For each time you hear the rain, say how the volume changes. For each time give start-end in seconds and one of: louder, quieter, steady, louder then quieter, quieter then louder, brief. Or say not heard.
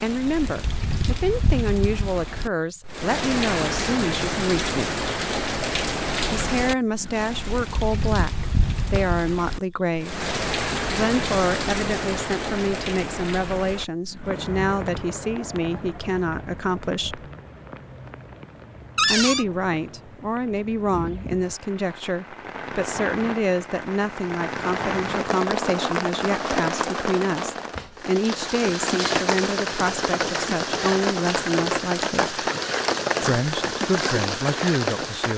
0.0-35.3 quieter then louder.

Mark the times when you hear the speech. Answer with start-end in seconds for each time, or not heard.
0.0-5.0, 6.2-10.3, 10.9-17.2, 19.1-32.4, 33.2-35.3.